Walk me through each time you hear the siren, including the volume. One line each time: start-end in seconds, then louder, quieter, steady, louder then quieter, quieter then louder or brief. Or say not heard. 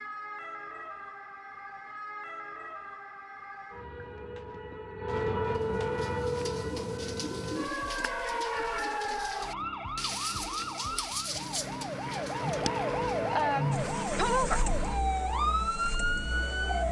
0.0-16.8 louder.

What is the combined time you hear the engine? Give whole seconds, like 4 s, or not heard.
3 s.